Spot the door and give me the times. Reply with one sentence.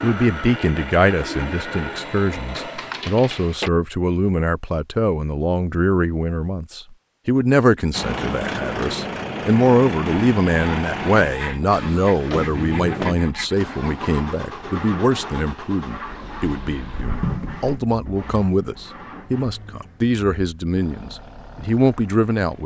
You can hear the door from 2.5 to 3.7 s, from 12.3 to 13.2 s and from 16.9 to 17.8 s.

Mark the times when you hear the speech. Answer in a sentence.
The speech can be heard from 0.0 to 22.6 s.